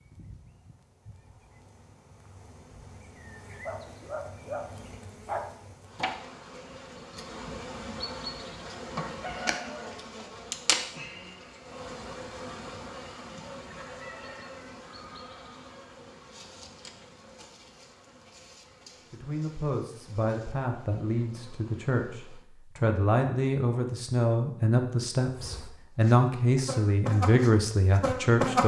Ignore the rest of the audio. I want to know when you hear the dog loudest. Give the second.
5 s.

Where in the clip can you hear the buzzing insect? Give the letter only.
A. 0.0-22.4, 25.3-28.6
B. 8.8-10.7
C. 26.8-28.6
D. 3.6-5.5
A.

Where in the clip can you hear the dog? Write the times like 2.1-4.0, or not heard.
3.6-5.5.